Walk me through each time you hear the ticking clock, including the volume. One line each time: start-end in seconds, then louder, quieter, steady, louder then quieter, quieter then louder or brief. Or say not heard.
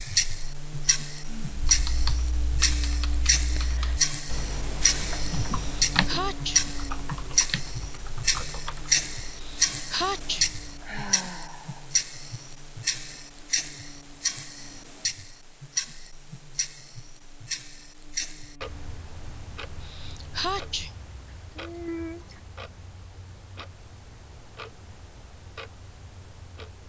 0.0-26.8 quieter.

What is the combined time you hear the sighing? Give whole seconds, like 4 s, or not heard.
2 s.